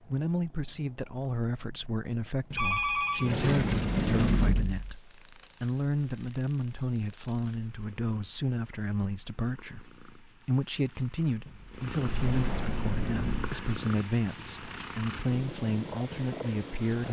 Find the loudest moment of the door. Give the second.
4 s.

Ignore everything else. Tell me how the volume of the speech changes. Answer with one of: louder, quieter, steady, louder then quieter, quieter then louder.
steady.